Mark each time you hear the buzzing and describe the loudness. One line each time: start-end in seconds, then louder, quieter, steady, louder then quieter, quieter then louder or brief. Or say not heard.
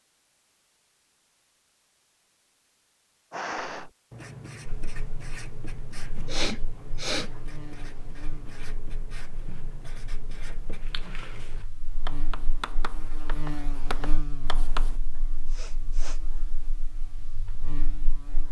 4.7-18.4 louder then quieter.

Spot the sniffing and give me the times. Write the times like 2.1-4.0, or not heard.
3.3-3.9, 6.2-7.3, 15.4-16.2.